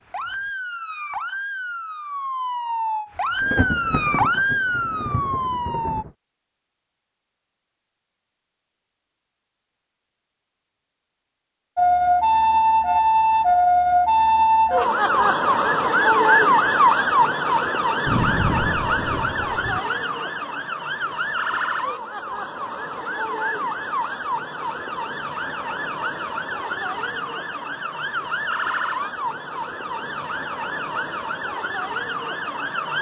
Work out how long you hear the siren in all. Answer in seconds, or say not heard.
27 s.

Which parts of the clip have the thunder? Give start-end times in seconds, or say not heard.
3.4-6.1, 18.1-19.8.